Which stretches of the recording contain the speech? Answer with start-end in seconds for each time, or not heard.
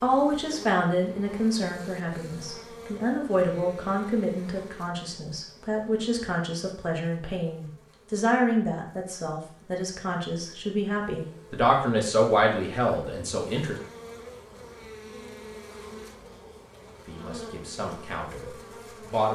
0.0-13.8, 17.1-19.3.